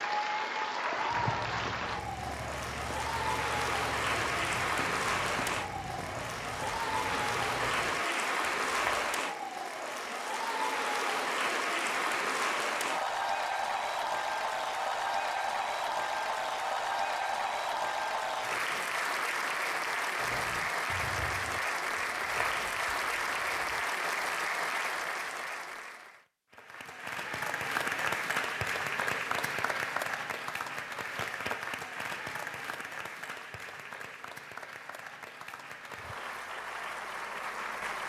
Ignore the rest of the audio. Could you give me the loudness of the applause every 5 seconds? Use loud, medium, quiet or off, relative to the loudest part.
loud, loud, loud, loud, loud, loud, medium, medium.